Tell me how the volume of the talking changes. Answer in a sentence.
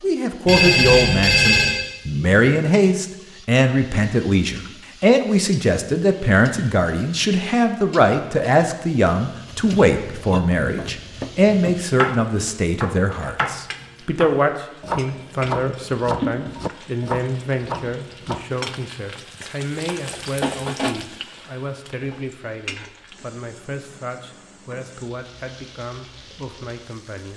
The volume of the talking goes down.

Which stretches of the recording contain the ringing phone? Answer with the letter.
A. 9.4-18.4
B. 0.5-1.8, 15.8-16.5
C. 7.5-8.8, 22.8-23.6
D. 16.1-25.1
B.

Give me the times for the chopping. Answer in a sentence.
The chopping can be heard from 9.4 to 18.4 s.